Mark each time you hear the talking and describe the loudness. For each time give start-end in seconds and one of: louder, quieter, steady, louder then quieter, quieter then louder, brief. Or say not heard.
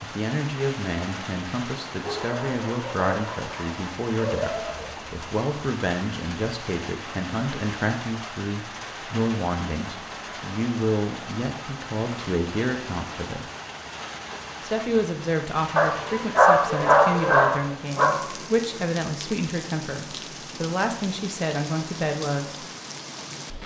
0.0-13.4 steady
14.6-22.6 steady.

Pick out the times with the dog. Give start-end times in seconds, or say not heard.
2.0-5.0, 15.8-18.1.